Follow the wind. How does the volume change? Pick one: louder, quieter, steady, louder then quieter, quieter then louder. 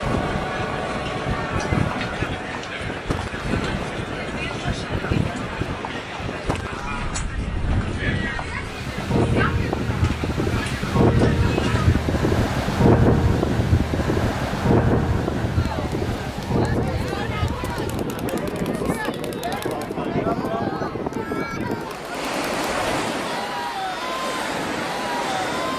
louder then quieter.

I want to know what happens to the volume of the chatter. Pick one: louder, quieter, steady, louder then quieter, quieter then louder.
steady.